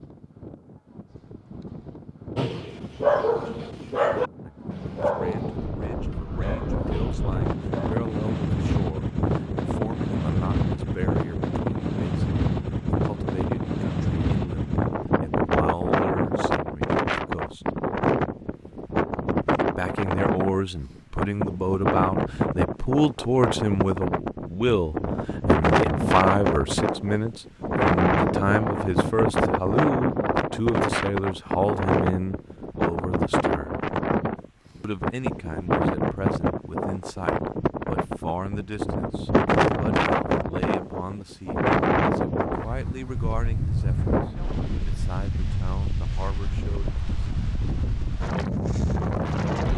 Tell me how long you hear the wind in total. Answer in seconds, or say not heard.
50 s.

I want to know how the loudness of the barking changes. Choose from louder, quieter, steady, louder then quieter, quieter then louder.
quieter.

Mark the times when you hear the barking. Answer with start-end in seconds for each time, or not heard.
2.4-8.0.